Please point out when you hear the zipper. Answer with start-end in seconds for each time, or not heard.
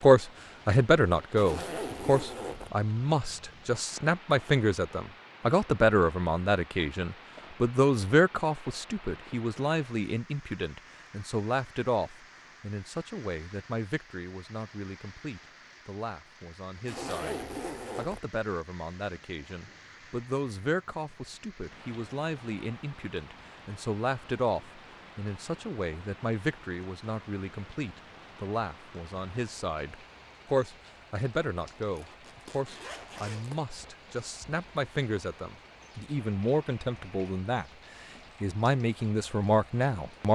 1.4-2.7, 16.9-18.2, 31.9-33.6.